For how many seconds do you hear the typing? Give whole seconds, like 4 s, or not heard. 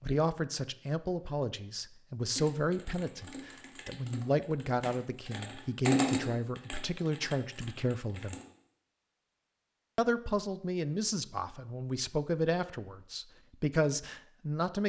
6 s.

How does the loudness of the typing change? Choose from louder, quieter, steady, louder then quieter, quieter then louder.
louder then quieter.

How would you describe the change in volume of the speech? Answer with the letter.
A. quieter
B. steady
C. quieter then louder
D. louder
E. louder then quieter
B.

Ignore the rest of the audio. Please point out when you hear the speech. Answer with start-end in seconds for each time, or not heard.
0.0-8.3, 9.9-14.8.